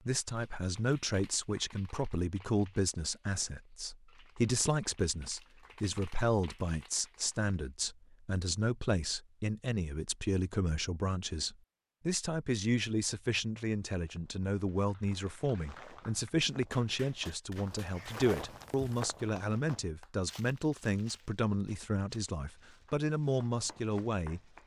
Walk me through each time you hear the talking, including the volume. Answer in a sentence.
You can hear the talking from 0.1 to 24.4 s, at a steady volume.